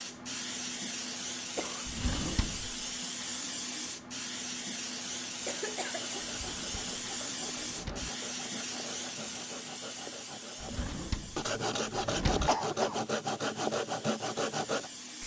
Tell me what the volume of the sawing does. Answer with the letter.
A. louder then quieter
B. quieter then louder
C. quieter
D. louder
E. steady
D.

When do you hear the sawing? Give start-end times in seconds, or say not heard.
5.9-14.9.